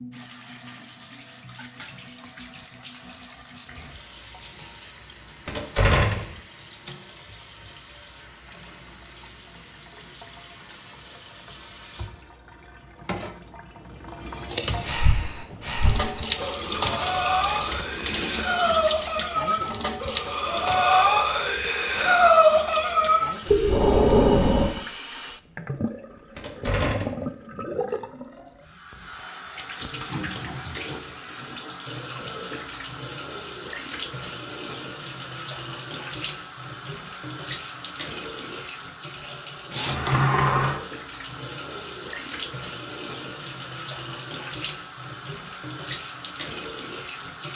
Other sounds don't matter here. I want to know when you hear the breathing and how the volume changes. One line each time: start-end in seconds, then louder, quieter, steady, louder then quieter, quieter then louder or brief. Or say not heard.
14.8-24.7 louder.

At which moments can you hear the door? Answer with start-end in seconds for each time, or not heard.
5.5-6.3, 26.4-27.2, 39.9-40.8.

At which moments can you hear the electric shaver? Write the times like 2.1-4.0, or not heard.
not heard.